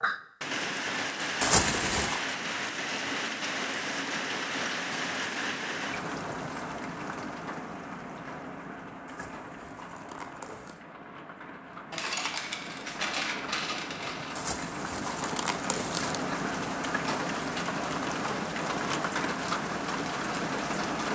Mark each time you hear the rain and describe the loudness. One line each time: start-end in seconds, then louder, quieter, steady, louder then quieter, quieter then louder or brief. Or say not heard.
0.0-21.1 quieter then louder.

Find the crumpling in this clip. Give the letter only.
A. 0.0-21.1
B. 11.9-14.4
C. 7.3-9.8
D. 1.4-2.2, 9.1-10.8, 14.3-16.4
D.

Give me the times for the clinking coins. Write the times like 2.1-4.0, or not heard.
11.9-14.4.